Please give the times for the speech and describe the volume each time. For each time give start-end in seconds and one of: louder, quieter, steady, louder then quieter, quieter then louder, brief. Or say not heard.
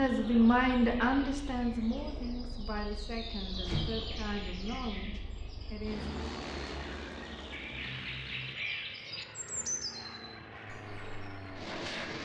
0.0-6.3 quieter.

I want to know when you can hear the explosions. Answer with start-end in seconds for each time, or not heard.
3.6-4.5.